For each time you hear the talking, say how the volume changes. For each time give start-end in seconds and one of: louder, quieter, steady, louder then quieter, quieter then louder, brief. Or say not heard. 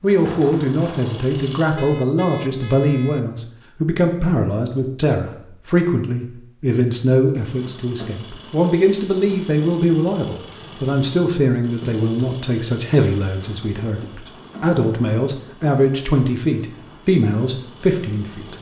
0.0-18.5 steady.